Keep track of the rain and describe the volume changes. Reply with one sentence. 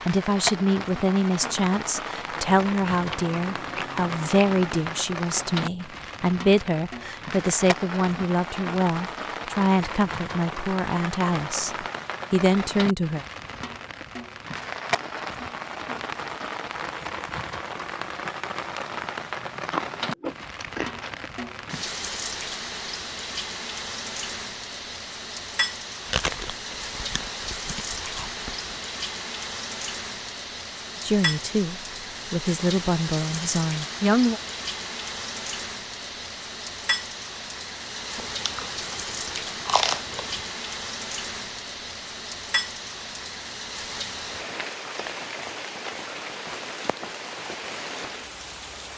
The loudness of the rain stays about the same.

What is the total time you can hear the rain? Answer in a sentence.
The rain can be heard for 49 seconds in total.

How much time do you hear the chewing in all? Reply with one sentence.
You can hear the chewing for 10 seconds altogether.